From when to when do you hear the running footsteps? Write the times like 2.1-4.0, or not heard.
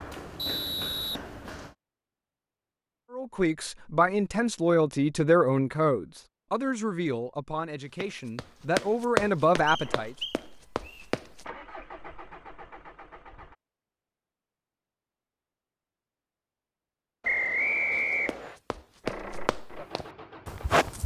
0.0-1.8, 8.0-11.4, 17.9-21.0.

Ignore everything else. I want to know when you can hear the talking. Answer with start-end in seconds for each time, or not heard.
3.1-10.2.